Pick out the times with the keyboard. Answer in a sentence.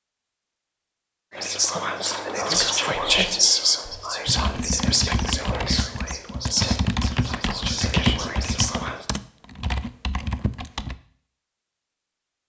The keyboard can be heard from 4.2 to 10.9 s.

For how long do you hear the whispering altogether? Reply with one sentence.
You can hear the whispering for 8 seconds altogether.